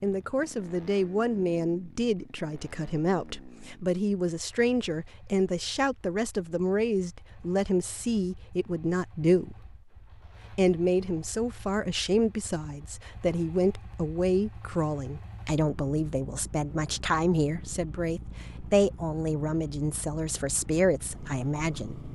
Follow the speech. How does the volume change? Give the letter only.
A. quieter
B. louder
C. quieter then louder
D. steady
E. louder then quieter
D.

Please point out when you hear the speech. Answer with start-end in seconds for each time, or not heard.
0.0-9.8, 10.5-22.0.